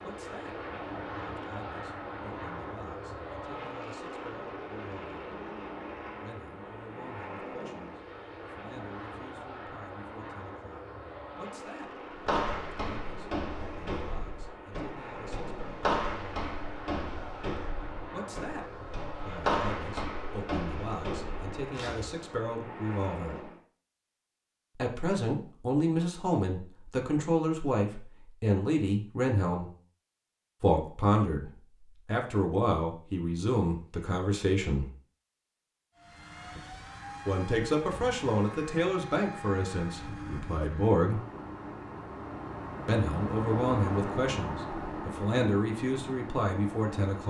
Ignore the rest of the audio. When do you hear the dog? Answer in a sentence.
You can't hear the dog here.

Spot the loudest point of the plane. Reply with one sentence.
The volume of the plane peaks at 44 seconds.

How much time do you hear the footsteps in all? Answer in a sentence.
The footsteps can be heard for 10 seconds in total.